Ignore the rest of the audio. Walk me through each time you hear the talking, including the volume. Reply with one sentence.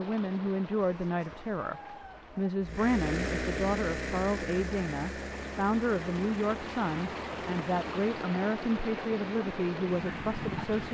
You can hear the talking from 0.0 to 10.9 s, at a steady volume.